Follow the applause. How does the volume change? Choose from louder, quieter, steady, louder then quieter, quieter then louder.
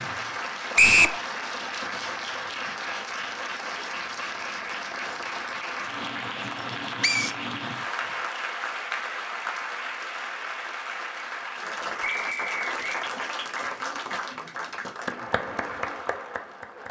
steady.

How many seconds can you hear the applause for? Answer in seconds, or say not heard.
17 s.